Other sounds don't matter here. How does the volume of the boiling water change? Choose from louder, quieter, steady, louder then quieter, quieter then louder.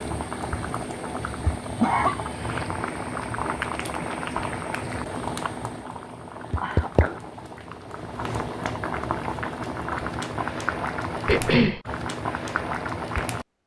steady.